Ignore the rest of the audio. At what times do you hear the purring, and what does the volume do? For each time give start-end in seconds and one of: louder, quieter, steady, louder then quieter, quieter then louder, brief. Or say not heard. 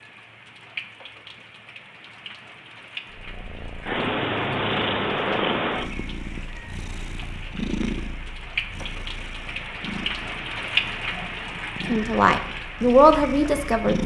3.1-14.0 quieter.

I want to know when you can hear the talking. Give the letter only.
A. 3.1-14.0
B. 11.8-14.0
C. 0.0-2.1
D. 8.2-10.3
B.